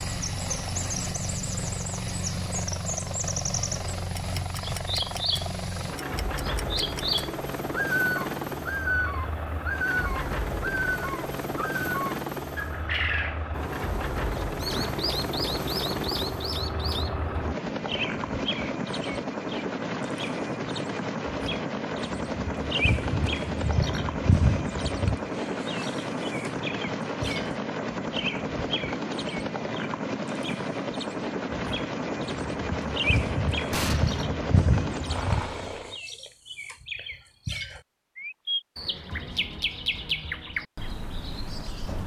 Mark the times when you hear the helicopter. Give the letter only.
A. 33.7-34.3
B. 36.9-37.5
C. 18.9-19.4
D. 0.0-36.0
D.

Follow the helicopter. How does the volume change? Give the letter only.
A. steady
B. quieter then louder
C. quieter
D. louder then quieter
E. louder
A.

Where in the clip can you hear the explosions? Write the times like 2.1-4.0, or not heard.
33.7-34.3.